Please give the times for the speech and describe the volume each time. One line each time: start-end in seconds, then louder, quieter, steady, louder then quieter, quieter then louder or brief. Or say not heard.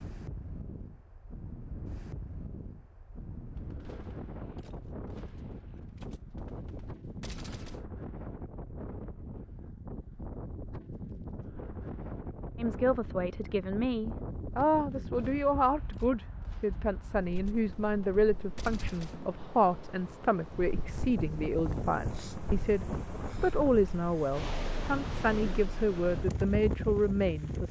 12.6-27.6 steady.